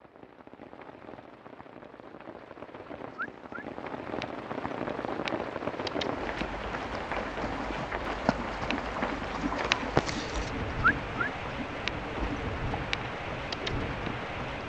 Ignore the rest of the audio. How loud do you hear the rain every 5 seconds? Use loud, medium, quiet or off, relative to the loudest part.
medium, loud, loud.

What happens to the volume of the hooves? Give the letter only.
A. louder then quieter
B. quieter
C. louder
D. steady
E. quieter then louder
A.